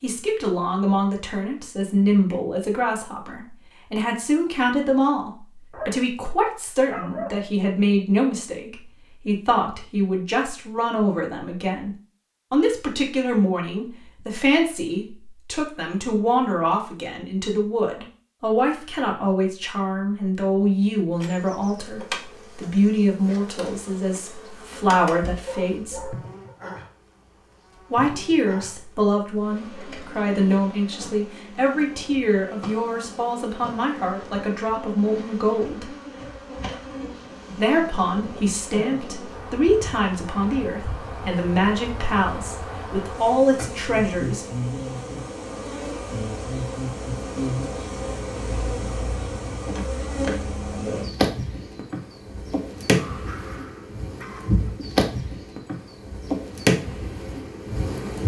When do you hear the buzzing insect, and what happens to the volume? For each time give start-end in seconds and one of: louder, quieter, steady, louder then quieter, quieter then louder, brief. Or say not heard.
21.1-58.2 louder.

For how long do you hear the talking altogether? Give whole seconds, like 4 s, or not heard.
41 s.